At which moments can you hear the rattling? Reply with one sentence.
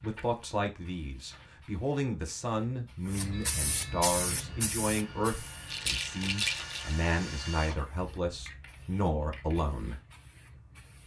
The rattling can be heard from 5.7 to 7.0 s.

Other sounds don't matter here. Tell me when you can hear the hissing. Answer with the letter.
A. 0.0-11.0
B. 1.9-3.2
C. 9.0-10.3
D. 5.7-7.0
A.